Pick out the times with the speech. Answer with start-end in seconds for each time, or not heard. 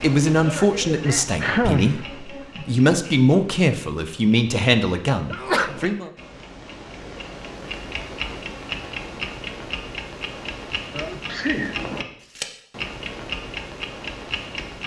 0.0-6.1.